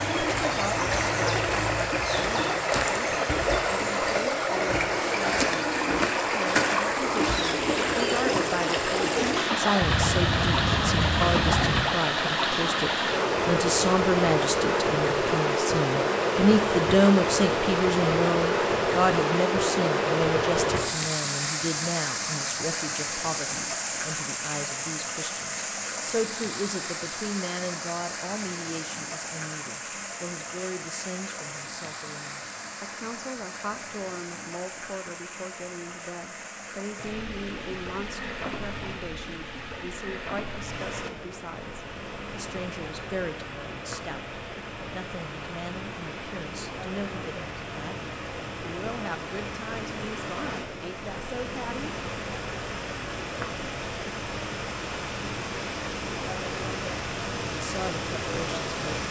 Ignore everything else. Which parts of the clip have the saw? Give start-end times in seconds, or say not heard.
9.8-11.8.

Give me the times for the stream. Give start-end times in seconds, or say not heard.
0.0-59.0.